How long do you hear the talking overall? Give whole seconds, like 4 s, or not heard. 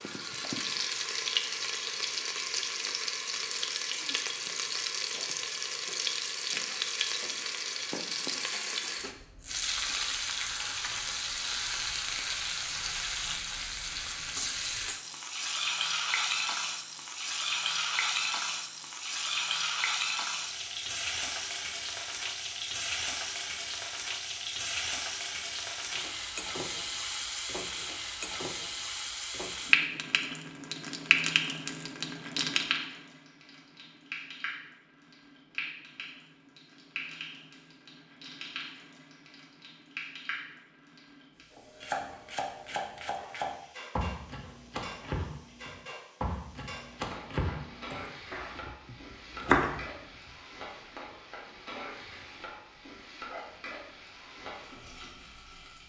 not heard.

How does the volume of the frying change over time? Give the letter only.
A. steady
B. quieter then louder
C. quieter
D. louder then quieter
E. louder
C.